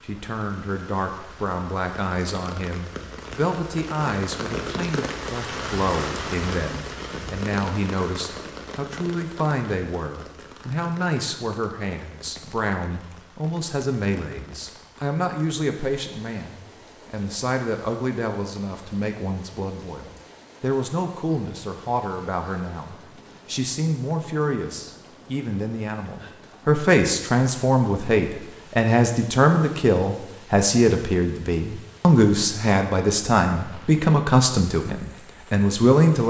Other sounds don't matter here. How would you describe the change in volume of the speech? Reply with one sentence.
The volume of the speech goes up.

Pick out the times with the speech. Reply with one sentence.
You can hear the speech from 0.0 to 36.2 s.